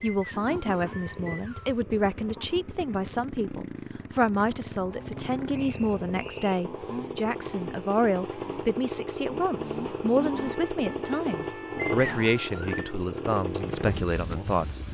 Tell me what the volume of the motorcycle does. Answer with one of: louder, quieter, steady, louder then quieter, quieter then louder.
louder.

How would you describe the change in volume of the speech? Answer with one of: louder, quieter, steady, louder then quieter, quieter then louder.
steady.